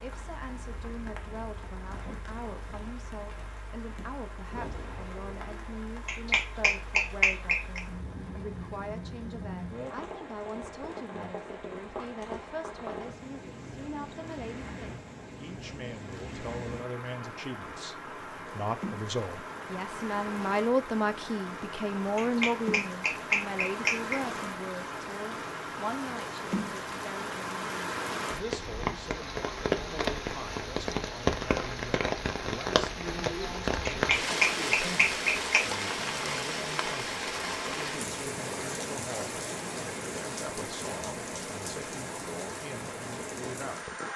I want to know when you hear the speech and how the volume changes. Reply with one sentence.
The speech can be heard from 0.0 to 43.9 s, getting louder then quieter.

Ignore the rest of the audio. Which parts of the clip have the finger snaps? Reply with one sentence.
The finger snaps can be heard from 6.0 to 7.8 s, from 22.1 to 24.2 s and from 33.9 to 35.6 s.